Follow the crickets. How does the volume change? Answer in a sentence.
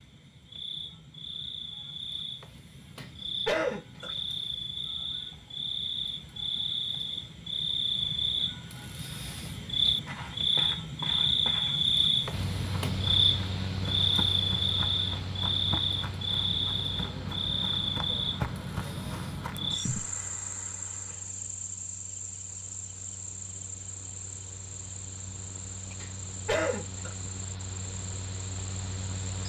The loudness of the crickets goes up, then down.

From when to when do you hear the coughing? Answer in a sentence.
The coughing can be heard from 3.0 to 4.1 s and from 26.0 to 27.1 s.